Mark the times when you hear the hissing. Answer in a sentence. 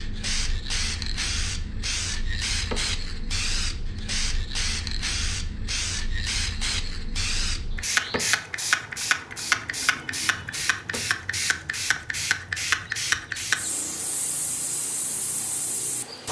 The hissing can be heard from 0.0 to 16.2 s.